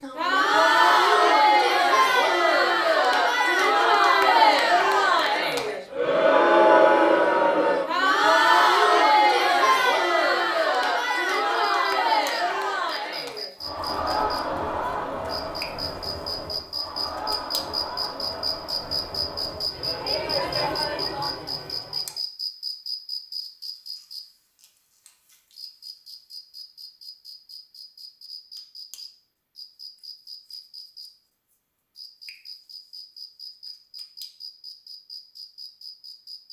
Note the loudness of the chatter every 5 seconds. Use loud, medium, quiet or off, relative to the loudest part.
loud, loud, medium, quiet, quiet, off, off, off.